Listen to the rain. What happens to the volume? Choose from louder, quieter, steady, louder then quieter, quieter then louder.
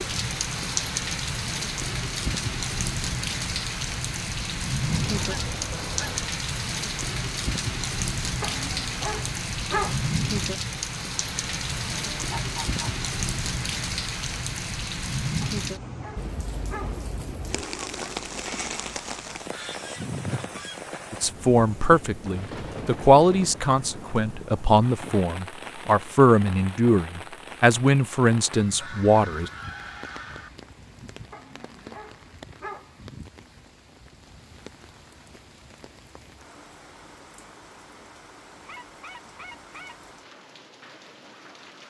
quieter.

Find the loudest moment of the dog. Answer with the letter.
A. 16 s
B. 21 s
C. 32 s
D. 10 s
D.